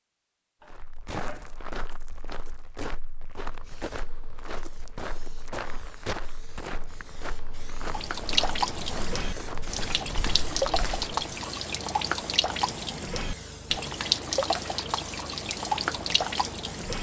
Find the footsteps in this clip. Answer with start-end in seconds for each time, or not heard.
0.7-11.1.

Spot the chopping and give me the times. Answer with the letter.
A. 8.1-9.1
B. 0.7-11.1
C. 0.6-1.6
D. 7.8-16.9
C.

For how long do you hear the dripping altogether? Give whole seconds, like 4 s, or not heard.
9 s.